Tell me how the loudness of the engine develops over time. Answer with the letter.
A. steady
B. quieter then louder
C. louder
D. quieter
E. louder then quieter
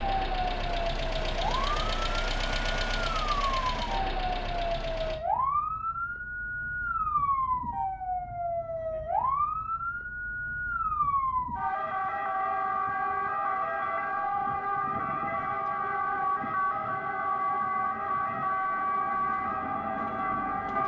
A.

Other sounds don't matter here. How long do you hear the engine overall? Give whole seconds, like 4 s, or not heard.
5 s.